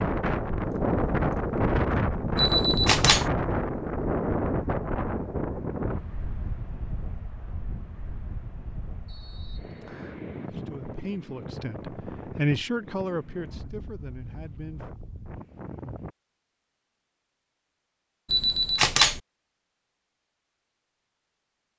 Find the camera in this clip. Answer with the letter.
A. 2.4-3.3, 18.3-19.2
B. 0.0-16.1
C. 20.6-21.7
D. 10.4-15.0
A.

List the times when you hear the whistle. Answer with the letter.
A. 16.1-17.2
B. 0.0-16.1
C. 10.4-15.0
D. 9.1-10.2
D.